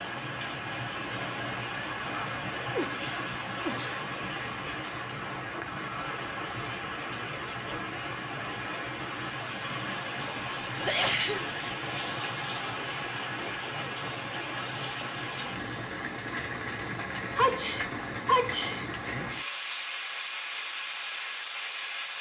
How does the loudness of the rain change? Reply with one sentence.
The loudness of the rain stays about the same.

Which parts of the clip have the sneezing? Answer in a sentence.
The sneezing can be heard from 2.5 to 4.0 s, from 10.3 to 11.4 s and from 17.4 to 18.9 s.